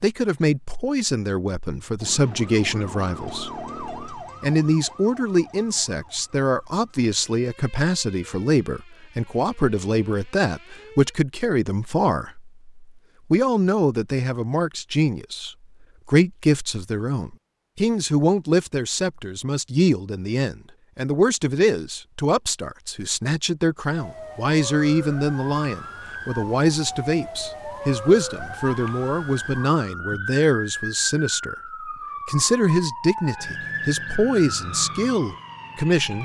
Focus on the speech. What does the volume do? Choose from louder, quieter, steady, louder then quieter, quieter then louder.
steady.